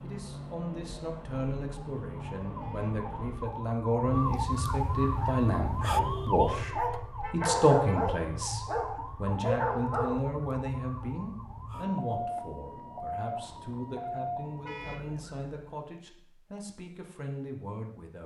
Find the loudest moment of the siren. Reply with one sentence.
The loudest moment of the siren is at 6 seconds.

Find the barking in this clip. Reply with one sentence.
You can hear the barking from 5.0 to 10.2 s.